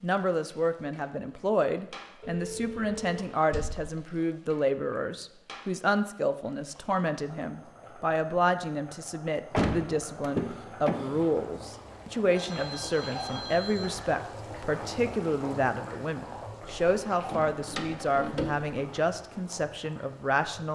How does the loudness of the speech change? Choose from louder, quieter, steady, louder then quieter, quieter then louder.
steady.